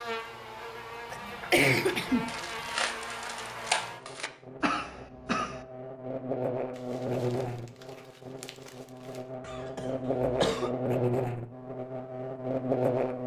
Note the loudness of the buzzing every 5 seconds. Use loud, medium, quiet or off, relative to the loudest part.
medium, medium, loud.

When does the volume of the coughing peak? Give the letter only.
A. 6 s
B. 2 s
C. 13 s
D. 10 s
B.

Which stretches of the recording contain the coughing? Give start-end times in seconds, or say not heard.
1.1-2.8, 4.6-5.6, 9.4-10.7.